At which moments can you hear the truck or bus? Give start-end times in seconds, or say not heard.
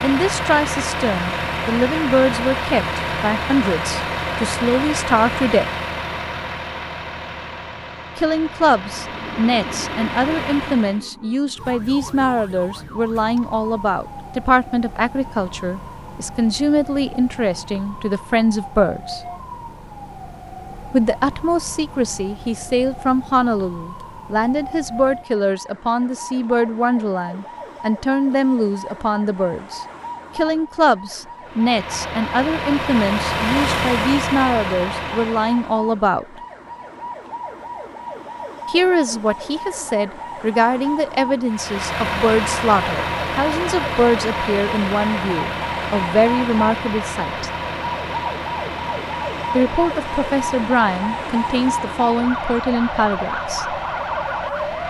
0.0-11.1, 31.4-35.8, 41.5-54.8.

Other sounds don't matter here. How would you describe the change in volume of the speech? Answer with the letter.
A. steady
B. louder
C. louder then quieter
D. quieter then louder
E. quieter
A.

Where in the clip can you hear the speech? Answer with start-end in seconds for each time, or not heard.
0.0-5.7, 8.2-19.2, 20.9-36.4, 38.6-47.5, 49.5-53.6.